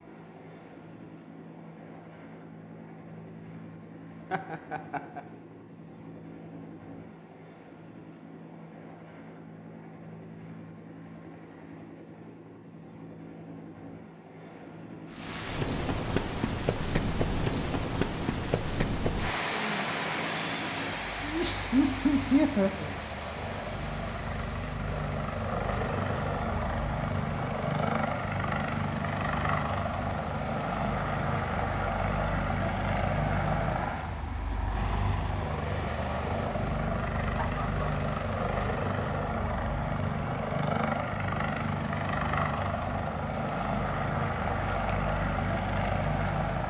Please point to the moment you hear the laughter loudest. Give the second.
22 s.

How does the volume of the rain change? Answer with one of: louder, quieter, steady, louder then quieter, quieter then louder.
quieter.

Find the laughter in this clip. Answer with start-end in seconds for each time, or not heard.
4.3-5.2, 21.2-22.9, 37.3-37.9.